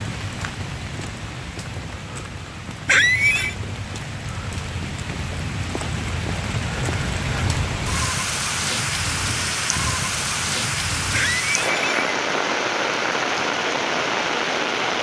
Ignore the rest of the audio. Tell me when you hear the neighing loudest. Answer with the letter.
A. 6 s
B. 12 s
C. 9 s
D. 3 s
D.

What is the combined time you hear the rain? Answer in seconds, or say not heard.
15 s.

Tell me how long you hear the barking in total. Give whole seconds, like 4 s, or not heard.
not heard.